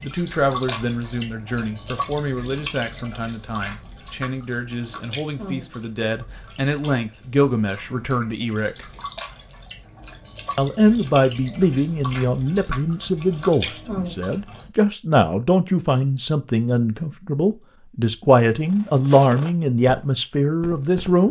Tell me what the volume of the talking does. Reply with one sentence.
The volume of the talking goes up.